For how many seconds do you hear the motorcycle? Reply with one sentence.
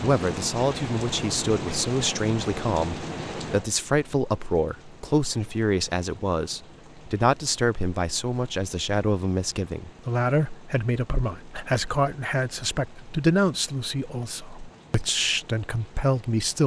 You can't hear the motorcycle here.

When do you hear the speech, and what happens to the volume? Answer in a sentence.
The speech can be heard from 0.0 to 16.6 s, at a steady volume.